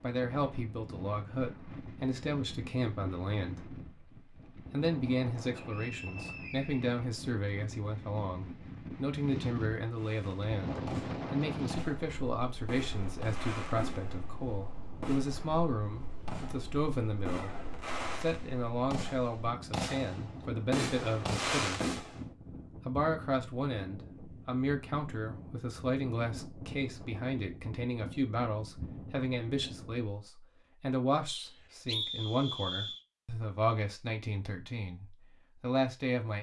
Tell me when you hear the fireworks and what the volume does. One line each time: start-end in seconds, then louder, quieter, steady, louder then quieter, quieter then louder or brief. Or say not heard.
9.9-22.2 louder.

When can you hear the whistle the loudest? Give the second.
32 s.